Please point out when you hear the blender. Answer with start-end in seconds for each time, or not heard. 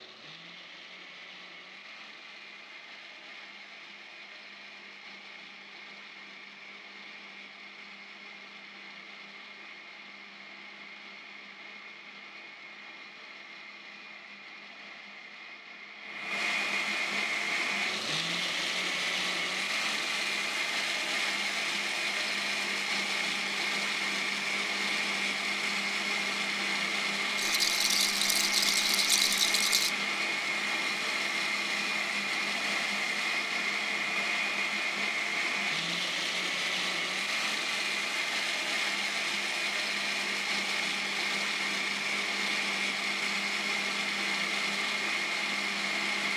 0.0-46.3.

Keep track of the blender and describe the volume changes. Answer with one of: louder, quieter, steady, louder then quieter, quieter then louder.
louder.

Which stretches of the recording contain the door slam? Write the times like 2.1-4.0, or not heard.
not heard.